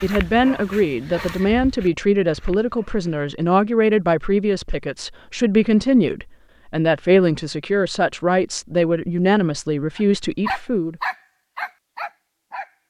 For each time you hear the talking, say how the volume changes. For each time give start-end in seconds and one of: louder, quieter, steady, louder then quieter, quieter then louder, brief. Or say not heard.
0.0-11.0 steady.